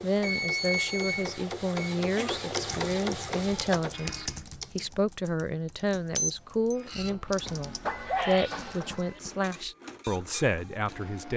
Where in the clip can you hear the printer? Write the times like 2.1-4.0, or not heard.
0.0-4.5, 6.7-11.3.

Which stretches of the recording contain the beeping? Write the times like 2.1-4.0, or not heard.
0.2-1.9, 5.7-6.8.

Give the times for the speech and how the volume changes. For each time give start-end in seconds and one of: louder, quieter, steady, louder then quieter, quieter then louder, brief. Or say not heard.
0.0-11.3 steady.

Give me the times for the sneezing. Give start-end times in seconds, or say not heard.
1.9-2.5, 8.1-9.2.